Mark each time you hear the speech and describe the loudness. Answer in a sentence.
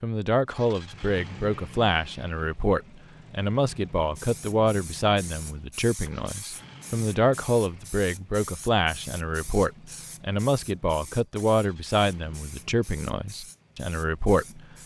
You can hear the speech from 0.0 to 14.6 s, at a steady volume.